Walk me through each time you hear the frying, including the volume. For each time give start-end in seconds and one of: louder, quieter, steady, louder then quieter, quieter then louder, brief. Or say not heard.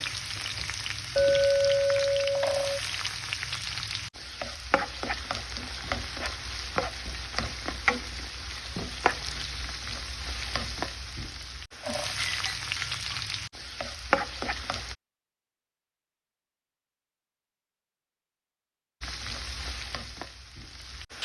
0.0-14.9 steady
19.0-21.2 brief.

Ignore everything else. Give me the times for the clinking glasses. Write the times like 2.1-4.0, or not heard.
1.1-2.8, 12.2-13.2.